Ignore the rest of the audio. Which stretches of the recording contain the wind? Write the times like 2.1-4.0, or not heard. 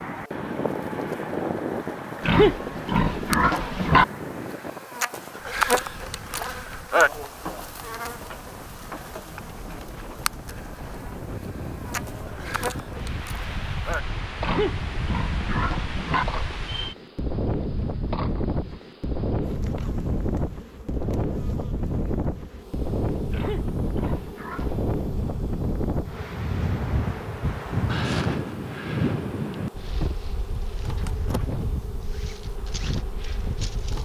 0.0-34.0.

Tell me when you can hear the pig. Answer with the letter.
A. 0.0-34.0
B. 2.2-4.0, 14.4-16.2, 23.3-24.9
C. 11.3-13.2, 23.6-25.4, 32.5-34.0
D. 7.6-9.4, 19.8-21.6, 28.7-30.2
B.